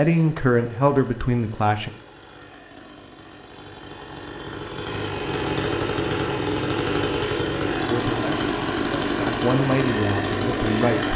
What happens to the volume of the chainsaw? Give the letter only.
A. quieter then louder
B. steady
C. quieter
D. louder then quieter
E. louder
E.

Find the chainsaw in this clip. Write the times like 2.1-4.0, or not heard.
0.0-11.1.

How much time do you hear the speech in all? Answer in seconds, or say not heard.
5 s.